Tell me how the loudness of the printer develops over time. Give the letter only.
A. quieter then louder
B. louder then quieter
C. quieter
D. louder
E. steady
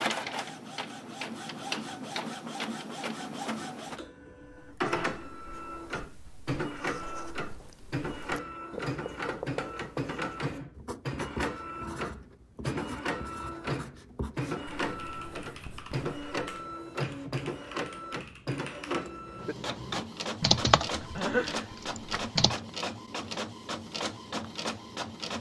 E.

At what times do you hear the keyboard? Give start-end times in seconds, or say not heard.
14.8-22.6.